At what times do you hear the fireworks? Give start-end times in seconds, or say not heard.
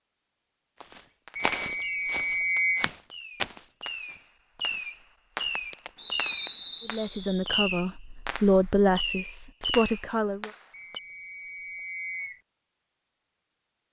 1.2-11.0.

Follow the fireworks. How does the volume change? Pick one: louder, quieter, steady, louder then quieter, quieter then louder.
louder.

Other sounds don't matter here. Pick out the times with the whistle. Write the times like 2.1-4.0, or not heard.
1.4-2.9, 6.0-7.5, 10.7-12.4.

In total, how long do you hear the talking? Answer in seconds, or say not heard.
4 s.